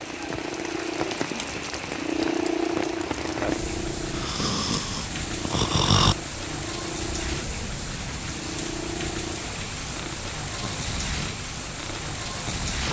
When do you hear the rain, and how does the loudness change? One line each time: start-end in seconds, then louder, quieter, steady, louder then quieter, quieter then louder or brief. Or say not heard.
0.0-12.8 steady.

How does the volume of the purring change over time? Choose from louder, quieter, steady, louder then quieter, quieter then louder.
quieter.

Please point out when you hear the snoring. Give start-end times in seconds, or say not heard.
4.1-6.2.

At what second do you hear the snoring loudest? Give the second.
6 s.